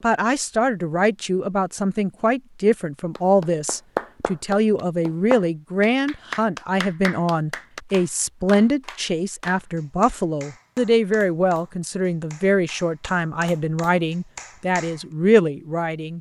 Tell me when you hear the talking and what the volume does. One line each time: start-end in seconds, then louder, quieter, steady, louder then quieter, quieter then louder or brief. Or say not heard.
0.0-16.1 steady.